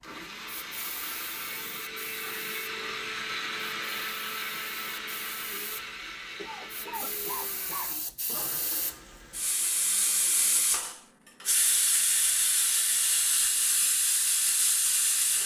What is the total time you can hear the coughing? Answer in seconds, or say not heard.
2 s.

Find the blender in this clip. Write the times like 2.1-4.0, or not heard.
0.0-10.9.